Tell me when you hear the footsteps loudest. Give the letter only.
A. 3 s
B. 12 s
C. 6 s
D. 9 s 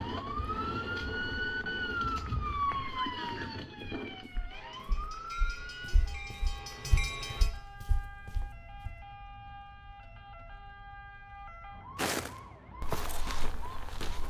B.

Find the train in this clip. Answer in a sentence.
The train can be heard from 4.5 to 7.5 s.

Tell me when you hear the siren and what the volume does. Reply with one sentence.
You can hear the siren from 0.0 to 14.2 s, getting quieter.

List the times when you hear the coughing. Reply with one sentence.
You can't hear the coughing here.